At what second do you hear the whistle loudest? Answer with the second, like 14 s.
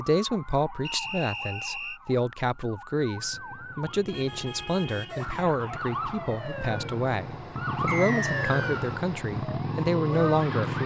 8 s.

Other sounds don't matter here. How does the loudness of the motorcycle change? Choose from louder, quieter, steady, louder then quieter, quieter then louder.
louder.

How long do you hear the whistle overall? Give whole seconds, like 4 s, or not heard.
2 s.